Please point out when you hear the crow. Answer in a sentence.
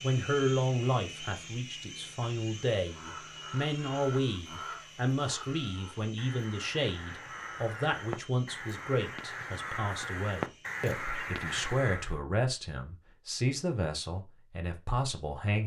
The crow can be heard from 2.8 to 12.2 s.